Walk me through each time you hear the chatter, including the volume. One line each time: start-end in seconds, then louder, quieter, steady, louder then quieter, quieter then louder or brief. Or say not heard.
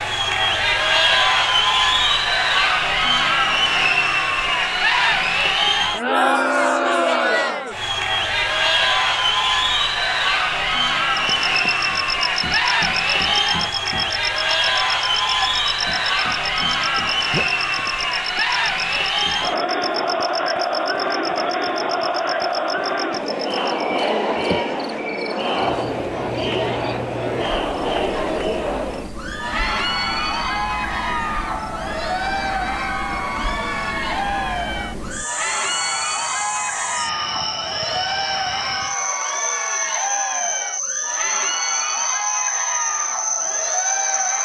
0.0-44.3 quieter.